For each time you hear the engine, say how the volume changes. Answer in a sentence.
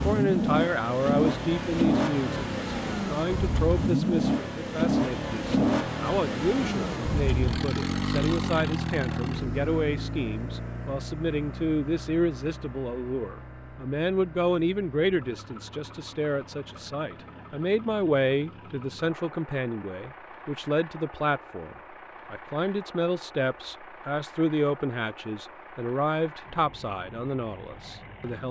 The engine can be heard from 0.0 to 28.4 s, getting quieter.